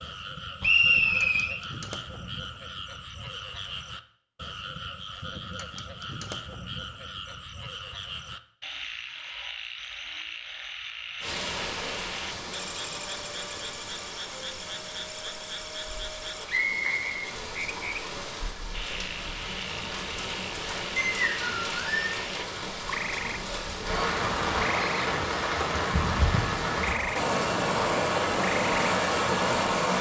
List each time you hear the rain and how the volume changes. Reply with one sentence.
The rain can be heard from 11.2 to 29.9 s, getting louder.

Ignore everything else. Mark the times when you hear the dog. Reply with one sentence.
The dog can't be heard in this clip.